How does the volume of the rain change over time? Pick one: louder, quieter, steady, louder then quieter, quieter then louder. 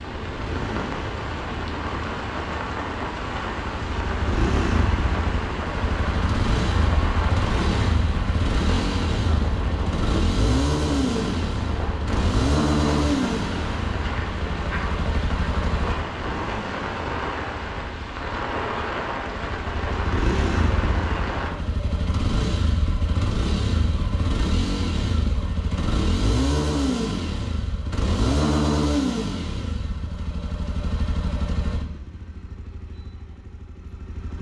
steady.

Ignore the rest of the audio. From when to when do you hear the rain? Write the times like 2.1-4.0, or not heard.
0.0-21.6.